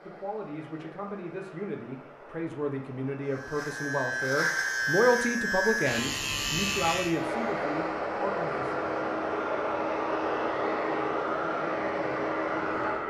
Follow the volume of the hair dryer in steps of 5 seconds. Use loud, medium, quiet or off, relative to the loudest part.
quiet, loud, loud.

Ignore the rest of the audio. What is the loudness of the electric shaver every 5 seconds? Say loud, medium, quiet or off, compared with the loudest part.
loud, loud, off.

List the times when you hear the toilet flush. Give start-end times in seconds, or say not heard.
not heard.